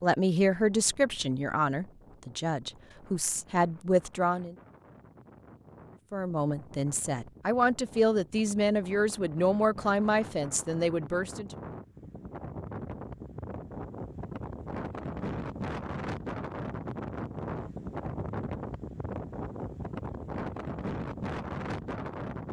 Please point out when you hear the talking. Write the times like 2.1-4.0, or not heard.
0.0-4.5, 6.1-11.5.